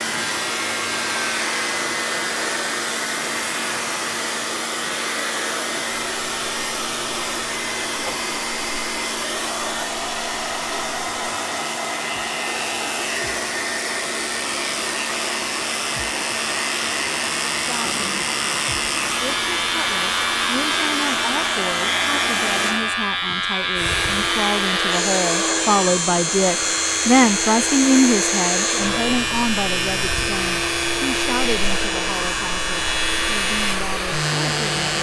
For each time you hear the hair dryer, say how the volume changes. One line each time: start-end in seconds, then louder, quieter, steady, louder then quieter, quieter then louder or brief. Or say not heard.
0.0-34.9 steady.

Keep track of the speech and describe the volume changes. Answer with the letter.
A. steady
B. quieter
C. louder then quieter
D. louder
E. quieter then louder
C.